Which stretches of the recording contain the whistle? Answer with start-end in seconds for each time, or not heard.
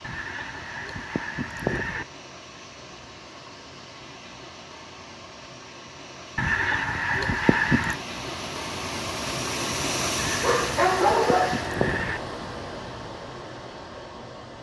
not heard.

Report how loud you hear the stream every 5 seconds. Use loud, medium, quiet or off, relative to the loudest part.
medium, loud, loud.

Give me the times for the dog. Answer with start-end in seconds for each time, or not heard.
10.4-11.7.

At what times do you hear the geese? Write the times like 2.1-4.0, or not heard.
0.0-2.0, 6.3-8.0, 10.2-12.2.